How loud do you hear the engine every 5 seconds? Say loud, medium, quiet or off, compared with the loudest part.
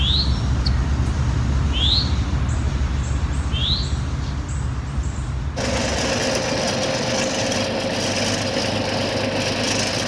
off, loud.